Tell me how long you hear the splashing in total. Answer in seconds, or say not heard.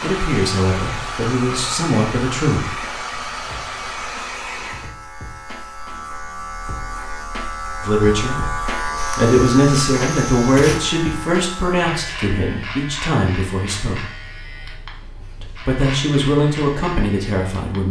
not heard.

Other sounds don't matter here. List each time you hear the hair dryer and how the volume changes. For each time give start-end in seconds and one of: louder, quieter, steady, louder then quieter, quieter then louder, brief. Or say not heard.
0.0-5.0 steady.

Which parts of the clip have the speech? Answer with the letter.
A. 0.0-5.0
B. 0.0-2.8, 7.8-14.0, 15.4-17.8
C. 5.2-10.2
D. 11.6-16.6
B.